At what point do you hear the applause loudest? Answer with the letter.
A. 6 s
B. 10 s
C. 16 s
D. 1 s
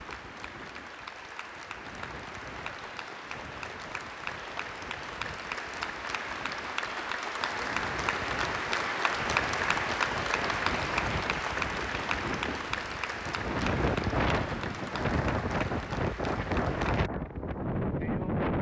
B.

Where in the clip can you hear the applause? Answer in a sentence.
You can hear the applause from 0.0 to 17.1 s.